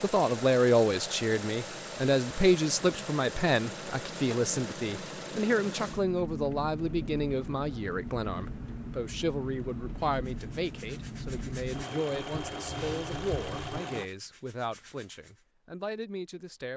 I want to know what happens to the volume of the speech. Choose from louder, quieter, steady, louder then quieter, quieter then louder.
quieter.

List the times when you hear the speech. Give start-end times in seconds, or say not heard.
0.0-16.7.